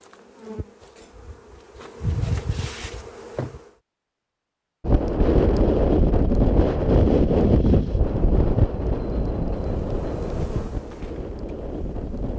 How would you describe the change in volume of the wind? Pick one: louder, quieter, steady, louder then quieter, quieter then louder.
quieter.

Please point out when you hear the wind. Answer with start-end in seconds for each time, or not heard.
4.8-12.3.